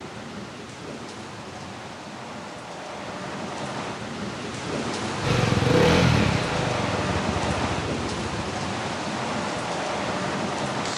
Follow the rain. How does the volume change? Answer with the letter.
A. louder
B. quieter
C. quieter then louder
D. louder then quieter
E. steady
A.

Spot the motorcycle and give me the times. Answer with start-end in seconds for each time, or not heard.
5.2-8.6.